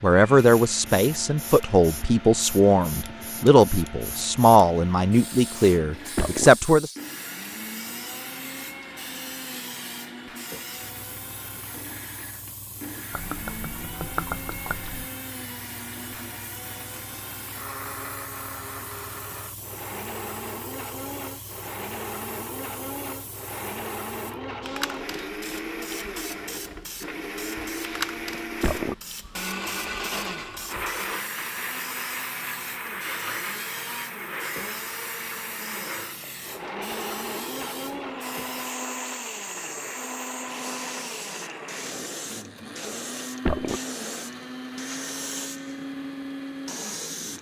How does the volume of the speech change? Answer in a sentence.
The loudness of the speech stays about the same.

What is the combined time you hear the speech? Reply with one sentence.
The speech can be heard for 7 seconds in total.